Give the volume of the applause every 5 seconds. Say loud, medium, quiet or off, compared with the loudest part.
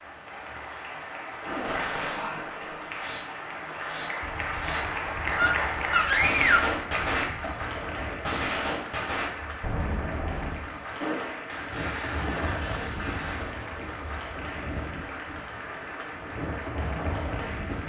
loud, loud, medium, medium.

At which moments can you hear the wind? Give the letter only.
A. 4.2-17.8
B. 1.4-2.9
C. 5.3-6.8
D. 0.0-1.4
A.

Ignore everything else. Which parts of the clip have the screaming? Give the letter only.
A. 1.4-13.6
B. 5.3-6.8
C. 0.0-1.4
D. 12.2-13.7
B.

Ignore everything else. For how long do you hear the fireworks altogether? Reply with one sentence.
You can hear the fireworks for 12 seconds altogether.